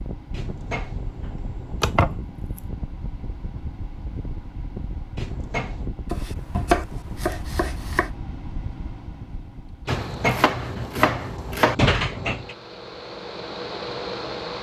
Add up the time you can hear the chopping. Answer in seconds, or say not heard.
5 s.